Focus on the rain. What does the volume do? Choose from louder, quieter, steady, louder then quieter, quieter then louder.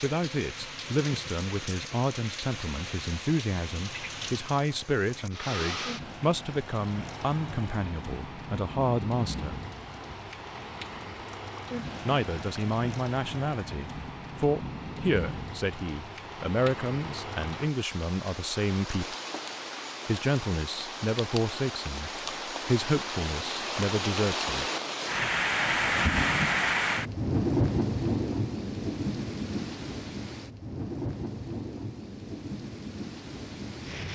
louder.